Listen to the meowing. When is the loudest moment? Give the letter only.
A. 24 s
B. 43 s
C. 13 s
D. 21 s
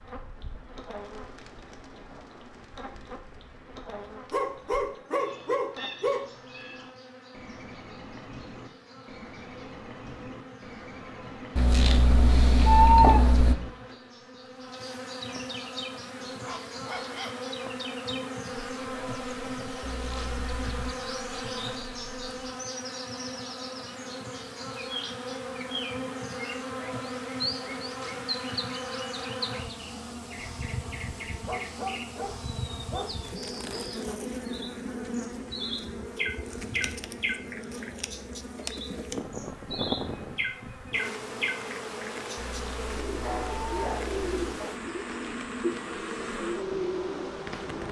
C.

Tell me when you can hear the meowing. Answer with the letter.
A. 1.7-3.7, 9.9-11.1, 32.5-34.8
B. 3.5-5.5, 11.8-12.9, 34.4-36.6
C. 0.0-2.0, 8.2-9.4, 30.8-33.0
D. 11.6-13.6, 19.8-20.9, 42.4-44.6
D.